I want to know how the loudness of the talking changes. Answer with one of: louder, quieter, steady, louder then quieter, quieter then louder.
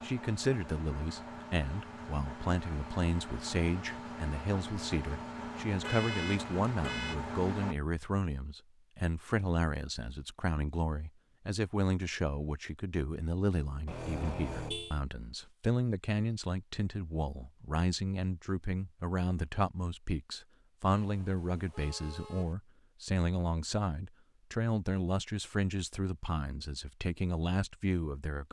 steady.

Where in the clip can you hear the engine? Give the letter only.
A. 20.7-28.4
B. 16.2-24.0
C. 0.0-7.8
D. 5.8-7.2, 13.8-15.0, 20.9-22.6
C.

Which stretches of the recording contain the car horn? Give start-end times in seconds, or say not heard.
5.8-7.2, 13.8-15.0, 20.9-22.6.